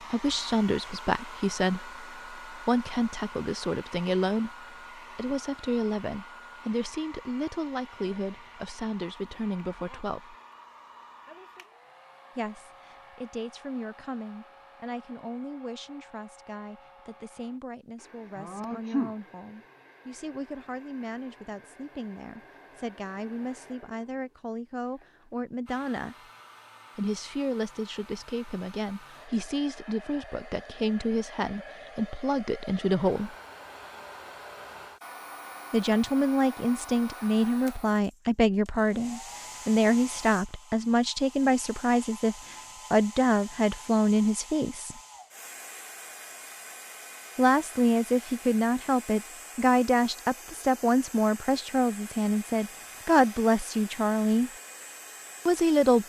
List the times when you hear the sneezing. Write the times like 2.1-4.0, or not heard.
18.4-19.1.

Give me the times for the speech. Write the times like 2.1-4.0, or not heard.
0.1-10.3, 12.3-26.1, 26.9-33.4, 35.7-45.0, 47.4-54.5, 55.5-56.0.